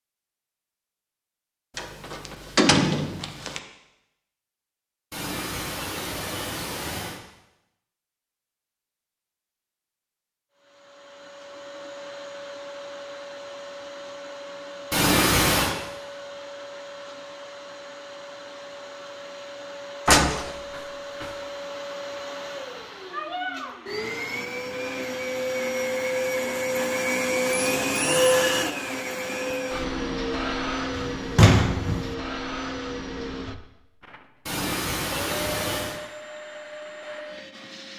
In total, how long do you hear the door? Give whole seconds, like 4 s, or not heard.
4 s.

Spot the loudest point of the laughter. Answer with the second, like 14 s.
15 s.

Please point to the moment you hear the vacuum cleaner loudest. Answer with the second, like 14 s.
28 s.